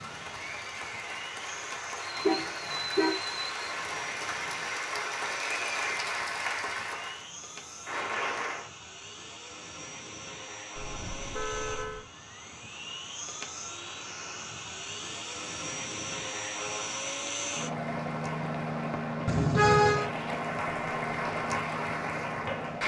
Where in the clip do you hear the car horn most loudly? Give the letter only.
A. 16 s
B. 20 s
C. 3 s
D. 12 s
B.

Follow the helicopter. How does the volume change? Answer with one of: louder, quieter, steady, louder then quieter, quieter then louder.
louder.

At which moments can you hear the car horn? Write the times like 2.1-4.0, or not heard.
2.1-3.2, 10.8-12.1, 19.2-20.1.